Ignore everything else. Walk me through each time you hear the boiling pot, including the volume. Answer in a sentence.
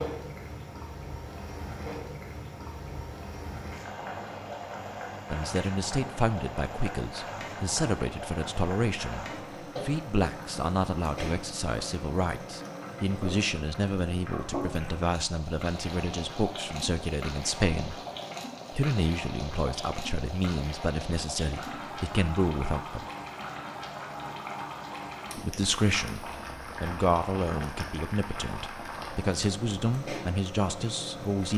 You can hear the boiling pot from 0.0 to 31.5 s, at a steady volume.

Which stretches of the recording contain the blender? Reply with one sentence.
The blender can't be heard in this clip.